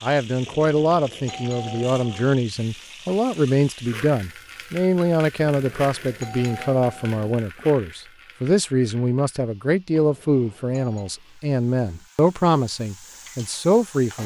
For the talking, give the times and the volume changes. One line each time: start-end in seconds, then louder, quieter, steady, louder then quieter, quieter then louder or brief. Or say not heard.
0.0-14.2 steady.